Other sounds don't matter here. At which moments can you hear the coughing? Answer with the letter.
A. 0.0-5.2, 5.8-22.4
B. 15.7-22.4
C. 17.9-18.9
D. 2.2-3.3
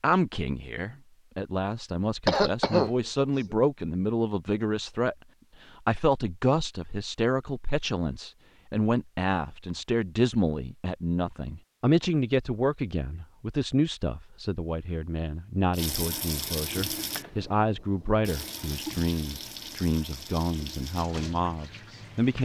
D.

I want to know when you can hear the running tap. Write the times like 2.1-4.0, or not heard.
15.7-22.4.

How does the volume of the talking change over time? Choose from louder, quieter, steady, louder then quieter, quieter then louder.
steady.